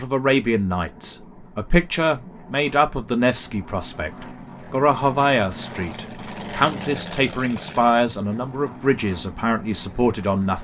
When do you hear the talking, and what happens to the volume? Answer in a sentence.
The talking can be heard from 0.0 to 10.5 s, at a steady volume.